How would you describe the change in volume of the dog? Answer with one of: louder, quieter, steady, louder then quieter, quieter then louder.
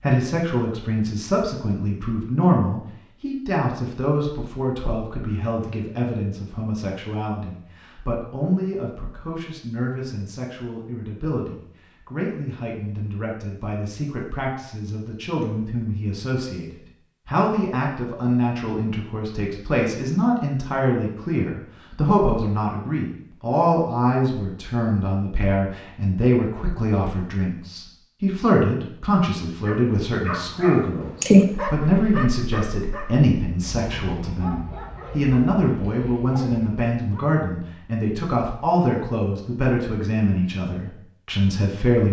quieter.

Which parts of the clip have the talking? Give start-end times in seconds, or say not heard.
0.0-42.0.